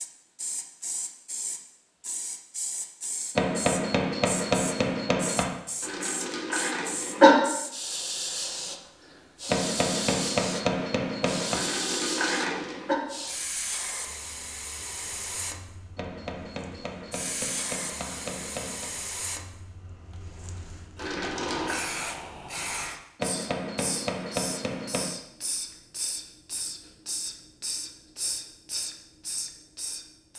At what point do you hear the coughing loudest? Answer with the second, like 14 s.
7 s.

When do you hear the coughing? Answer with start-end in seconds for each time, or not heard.
5.8-7.3, 11.5-12.9, 20.9-21.8.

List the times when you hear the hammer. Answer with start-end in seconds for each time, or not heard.
3.4-5.5, 9.4-11.7, 15.9-18.9, 23.1-25.1.